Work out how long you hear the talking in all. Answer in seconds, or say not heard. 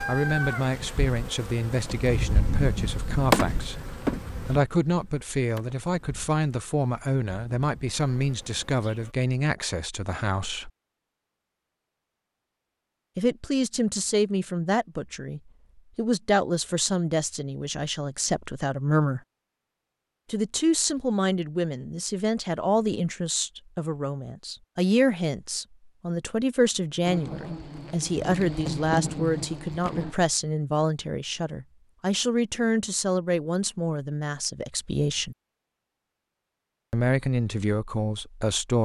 34 s.